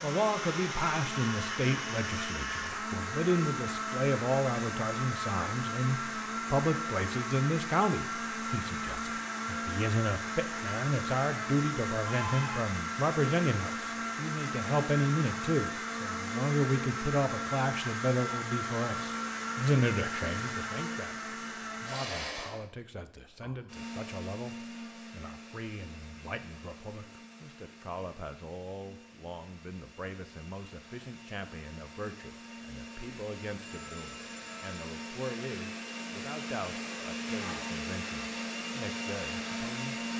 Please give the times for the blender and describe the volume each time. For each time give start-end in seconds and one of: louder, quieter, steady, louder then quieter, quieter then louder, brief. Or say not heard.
0.0-40.1 quieter then louder.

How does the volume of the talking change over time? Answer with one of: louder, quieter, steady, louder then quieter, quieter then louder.
quieter.